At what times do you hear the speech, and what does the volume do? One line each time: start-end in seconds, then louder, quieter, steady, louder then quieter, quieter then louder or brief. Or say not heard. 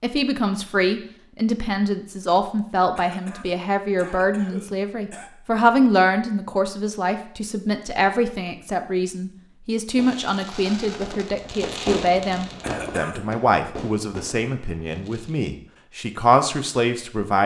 0.0-17.4 steady.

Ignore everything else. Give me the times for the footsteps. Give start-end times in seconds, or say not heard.
not heard.